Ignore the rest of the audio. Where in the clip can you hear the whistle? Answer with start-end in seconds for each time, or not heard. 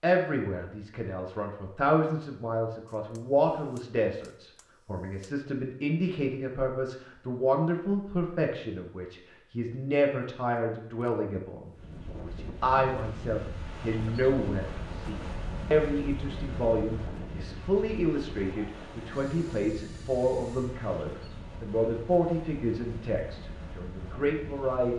not heard.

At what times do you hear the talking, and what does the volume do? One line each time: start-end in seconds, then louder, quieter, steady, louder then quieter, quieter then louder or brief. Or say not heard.
0.0-24.9 steady.